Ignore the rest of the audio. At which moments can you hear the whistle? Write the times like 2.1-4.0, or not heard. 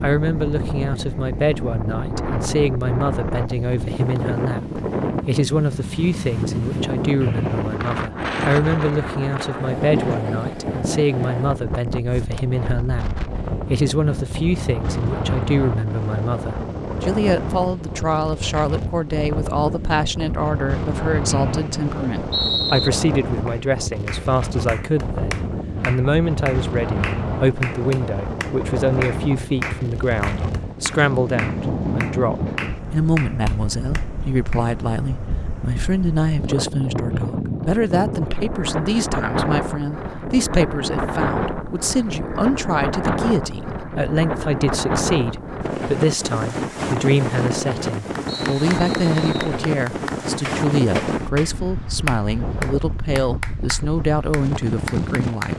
7.2-8.0, 21.2-22.9, 48.2-49.5.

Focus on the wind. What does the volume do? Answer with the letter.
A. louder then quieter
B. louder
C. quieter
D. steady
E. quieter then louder
D.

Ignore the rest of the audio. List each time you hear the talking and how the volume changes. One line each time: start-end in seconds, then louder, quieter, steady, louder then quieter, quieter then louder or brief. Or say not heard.
0.0-55.5 steady.